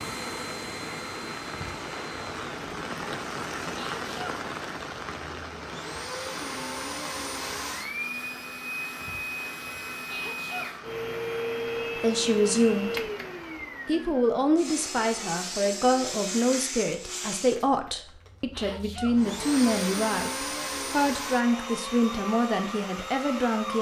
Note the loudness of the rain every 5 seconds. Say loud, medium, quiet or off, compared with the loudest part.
loud, medium, medium, off, off.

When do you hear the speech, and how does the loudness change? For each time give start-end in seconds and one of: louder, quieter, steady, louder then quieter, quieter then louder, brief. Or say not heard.
11.9-13.0 brief
13.8-23.7 steady.